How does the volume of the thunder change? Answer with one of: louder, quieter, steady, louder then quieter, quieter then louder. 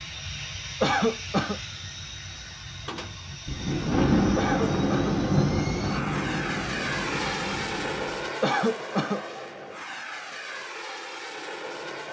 quieter.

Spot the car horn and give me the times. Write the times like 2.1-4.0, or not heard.
not heard.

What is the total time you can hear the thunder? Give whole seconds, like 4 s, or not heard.
5 s.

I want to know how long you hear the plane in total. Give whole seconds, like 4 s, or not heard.
12 s.